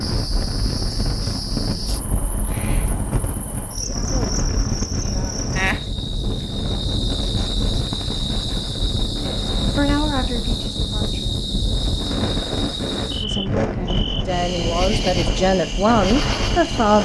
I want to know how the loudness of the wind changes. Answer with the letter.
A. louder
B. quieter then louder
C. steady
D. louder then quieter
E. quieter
C.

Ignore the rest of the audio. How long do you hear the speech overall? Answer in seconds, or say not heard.
6 s.